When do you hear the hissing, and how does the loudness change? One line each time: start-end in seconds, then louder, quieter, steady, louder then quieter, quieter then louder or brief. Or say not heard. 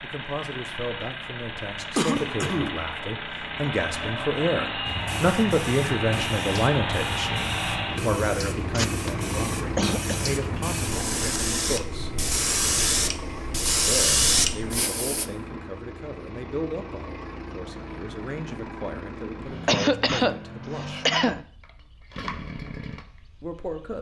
4.8-15.2 louder.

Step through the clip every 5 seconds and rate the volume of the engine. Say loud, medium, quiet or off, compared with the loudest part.
loud, loud, medium, medium, medium.